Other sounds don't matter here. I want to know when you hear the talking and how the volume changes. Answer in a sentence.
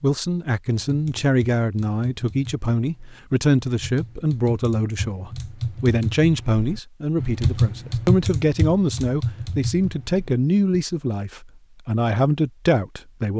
The talking can be heard from 0.0 to 13.3 s, at a steady volume.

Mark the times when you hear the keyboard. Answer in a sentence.
You can hear the keyboard from 0.8 to 10.8 s.